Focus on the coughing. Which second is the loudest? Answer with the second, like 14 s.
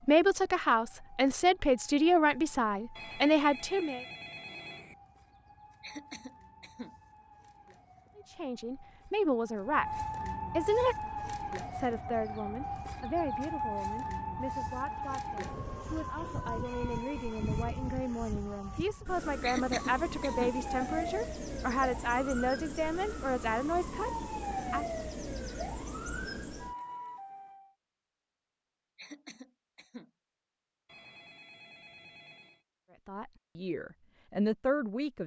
20 s.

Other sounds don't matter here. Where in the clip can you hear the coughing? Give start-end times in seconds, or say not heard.
5.8-7.0, 19.4-20.6, 28.9-30.1.